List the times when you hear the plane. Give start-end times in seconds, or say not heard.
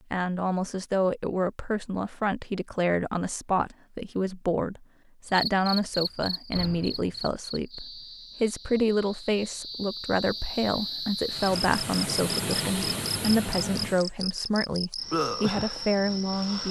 11.2-14.2.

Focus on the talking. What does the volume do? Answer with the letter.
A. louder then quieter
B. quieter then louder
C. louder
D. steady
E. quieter
D.